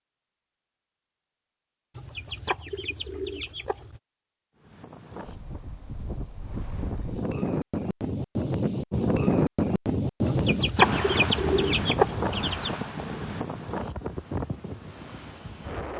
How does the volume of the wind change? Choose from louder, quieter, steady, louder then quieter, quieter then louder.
louder then quieter.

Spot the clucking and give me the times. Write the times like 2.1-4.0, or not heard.
1.9-4.0, 10.2-12.8.